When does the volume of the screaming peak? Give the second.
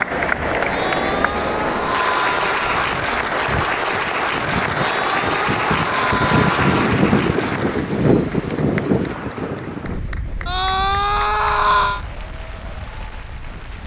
12 s.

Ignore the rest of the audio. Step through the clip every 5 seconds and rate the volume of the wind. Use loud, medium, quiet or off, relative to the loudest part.
quiet, loud, quiet.